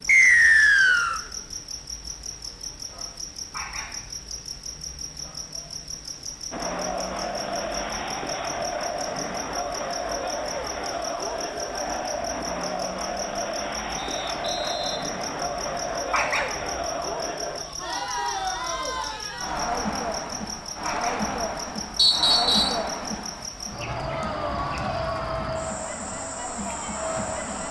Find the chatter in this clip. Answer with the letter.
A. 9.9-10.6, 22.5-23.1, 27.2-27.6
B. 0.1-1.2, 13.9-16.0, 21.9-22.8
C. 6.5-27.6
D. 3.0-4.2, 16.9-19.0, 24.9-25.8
C.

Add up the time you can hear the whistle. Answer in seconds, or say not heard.
4 s.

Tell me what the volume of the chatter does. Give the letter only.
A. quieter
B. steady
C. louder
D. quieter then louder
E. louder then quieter
B.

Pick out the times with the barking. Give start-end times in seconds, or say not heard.
3.5-4.2, 16.1-16.8, 20.8-21.2.